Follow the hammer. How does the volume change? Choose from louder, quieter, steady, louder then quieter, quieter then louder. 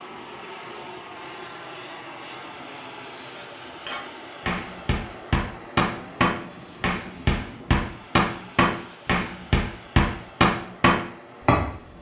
louder.